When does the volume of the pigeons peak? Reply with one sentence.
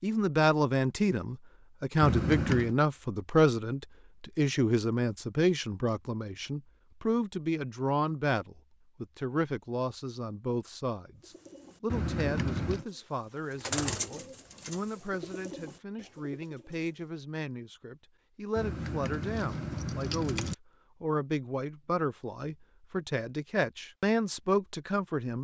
The loudest moment of the pigeons is at 14 seconds.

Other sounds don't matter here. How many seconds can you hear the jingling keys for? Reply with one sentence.
The jingling keys can be heard for 4 seconds in total.